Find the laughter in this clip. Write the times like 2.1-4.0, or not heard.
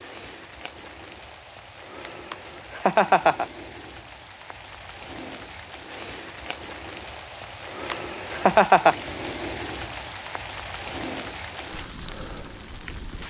2.3-3.5, 7.9-8.9.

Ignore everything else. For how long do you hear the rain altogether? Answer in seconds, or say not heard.
13 s.